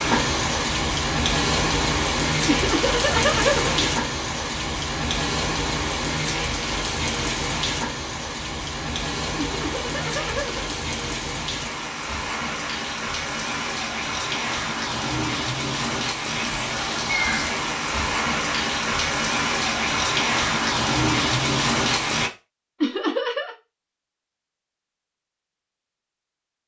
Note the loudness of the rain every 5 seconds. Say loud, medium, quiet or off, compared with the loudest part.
loud, medium, medium, loud, loud, off.